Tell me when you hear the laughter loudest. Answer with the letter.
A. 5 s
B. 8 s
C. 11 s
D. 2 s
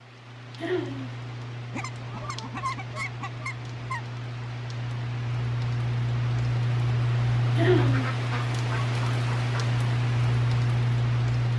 B.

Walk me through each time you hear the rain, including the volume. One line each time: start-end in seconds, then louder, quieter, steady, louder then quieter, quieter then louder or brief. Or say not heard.
0.0-11.5 louder.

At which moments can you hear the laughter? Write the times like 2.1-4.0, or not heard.
0.6-1.1, 7.5-8.1.